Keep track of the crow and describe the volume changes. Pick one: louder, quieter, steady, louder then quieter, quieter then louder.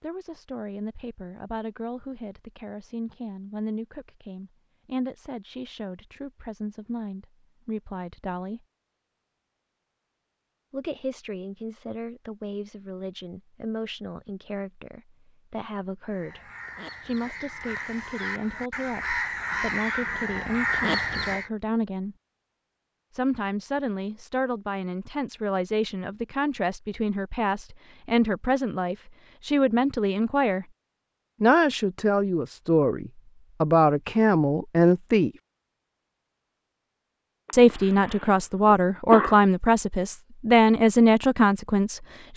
louder.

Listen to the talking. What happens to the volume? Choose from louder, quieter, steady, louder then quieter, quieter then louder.
louder.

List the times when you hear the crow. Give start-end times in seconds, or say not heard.
16.1-21.5.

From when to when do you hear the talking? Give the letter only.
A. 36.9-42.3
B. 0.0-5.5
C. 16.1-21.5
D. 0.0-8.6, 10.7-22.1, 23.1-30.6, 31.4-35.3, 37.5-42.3
D.